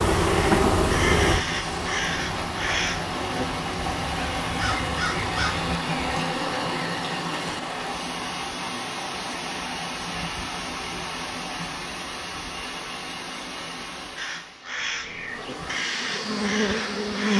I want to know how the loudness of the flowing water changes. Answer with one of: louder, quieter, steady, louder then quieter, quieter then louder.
quieter.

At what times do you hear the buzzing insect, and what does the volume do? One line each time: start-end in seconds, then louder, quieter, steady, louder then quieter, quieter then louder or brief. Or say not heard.
0.0-7.0 quieter
14.6-17.3 brief.